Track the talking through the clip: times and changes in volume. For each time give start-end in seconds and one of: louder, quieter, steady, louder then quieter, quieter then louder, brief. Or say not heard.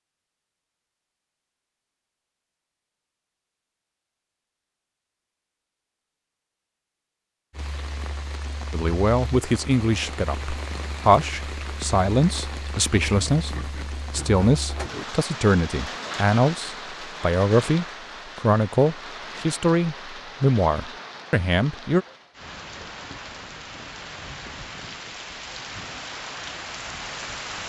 8.7-22.1 steady.